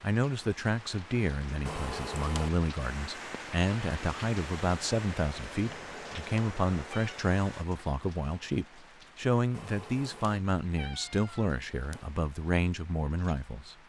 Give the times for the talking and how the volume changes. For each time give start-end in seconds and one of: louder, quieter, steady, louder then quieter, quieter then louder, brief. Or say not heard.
0.0-13.8 steady.